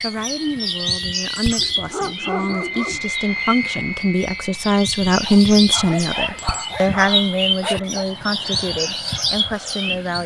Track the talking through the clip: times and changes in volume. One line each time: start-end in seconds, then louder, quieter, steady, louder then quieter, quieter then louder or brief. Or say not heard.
0.0-10.2 louder then quieter.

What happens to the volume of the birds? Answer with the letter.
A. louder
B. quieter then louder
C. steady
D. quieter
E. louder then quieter
B.